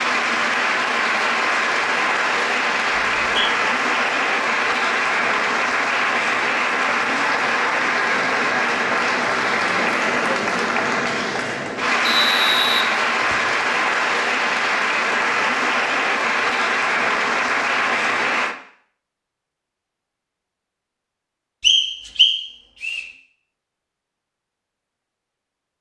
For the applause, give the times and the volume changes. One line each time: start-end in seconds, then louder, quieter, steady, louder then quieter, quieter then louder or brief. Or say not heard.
0.0-18.6 steady.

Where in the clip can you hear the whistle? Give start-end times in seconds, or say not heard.
3.0-3.5, 12.1-13.6, 21.6-23.0.